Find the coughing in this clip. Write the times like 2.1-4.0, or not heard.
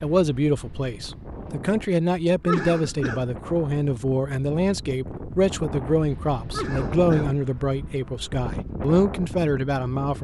2.5-3.3, 6.5-7.3.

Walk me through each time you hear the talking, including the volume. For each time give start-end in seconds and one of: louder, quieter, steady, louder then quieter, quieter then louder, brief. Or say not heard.
0.0-10.1 steady.